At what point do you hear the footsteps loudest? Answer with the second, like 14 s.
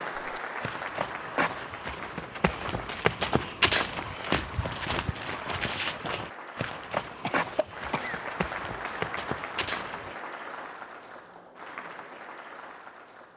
4 s.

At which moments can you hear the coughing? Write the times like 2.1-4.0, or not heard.
7.2-8.3.